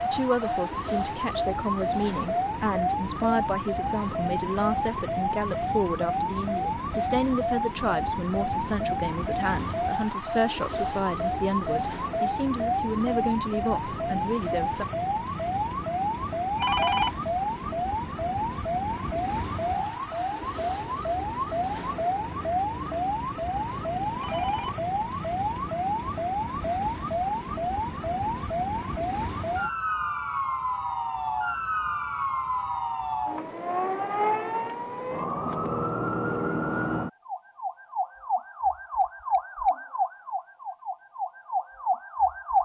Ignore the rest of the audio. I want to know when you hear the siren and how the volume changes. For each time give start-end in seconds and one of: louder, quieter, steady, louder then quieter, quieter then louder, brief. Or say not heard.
0.0-42.6 steady.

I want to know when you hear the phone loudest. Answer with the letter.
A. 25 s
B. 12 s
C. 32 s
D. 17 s
D.